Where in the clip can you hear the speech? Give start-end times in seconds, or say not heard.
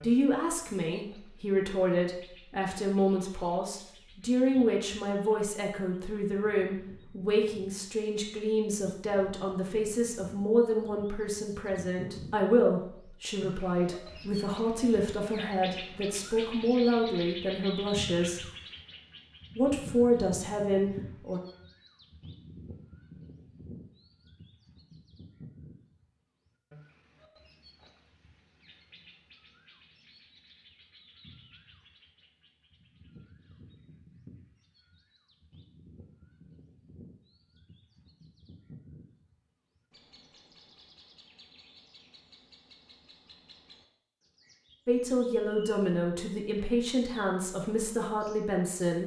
0.0-18.4, 19.6-21.4, 44.9-49.0.